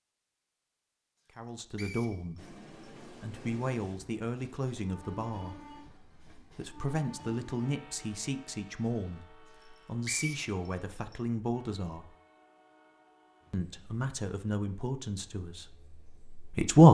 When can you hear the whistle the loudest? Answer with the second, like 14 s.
10 s.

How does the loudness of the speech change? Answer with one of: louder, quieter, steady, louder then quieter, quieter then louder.
louder.